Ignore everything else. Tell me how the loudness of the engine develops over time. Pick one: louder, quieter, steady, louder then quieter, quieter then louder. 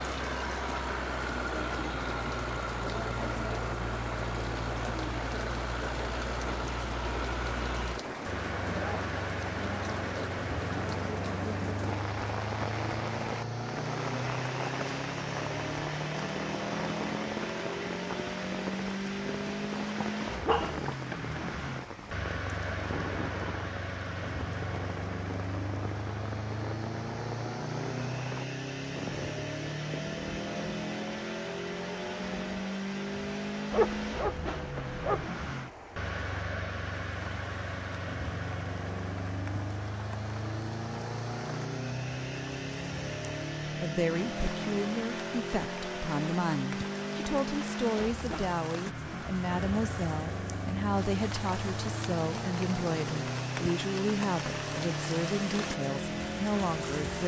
steady.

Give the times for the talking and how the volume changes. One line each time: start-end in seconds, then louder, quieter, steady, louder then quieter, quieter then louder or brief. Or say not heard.
43.6-57.2 steady.